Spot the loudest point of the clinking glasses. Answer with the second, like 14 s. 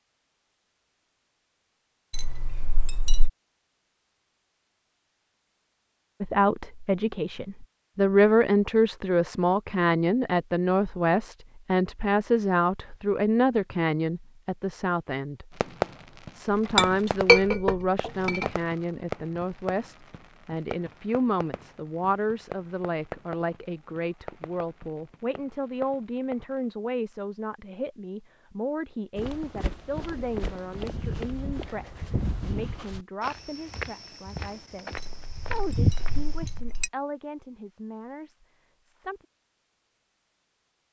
17 s.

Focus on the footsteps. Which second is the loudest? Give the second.
36 s.